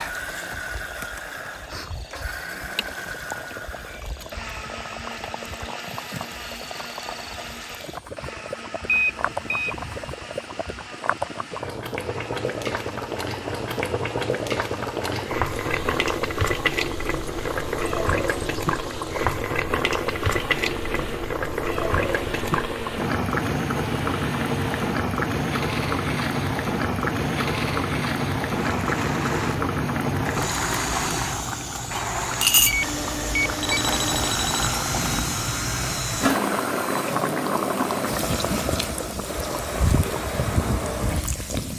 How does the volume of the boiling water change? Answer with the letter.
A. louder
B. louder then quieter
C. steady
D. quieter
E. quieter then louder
A.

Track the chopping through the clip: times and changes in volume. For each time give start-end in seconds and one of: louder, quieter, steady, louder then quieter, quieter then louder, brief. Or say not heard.
not heard.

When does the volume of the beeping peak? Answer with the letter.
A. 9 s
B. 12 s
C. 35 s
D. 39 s
A.